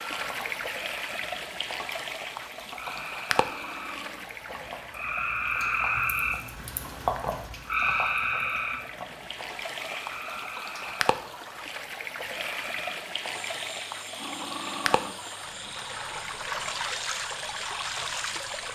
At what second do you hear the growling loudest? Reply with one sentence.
The loudest moment of the growling is at 15 seconds.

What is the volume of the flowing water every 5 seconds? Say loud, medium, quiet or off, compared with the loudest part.
loud, medium, loud, loud.